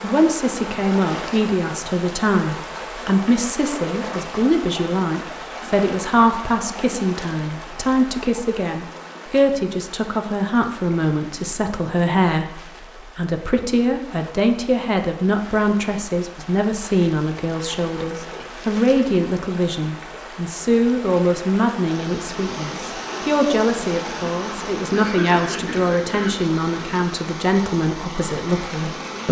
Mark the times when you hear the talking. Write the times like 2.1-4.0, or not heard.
0.0-29.2.